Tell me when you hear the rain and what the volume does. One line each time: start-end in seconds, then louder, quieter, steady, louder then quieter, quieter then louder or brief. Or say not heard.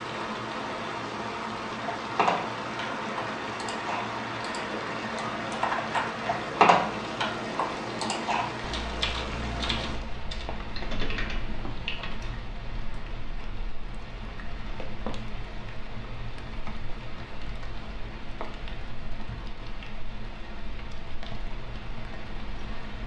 0.0-23.0 quieter.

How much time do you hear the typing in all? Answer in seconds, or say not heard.
10 s.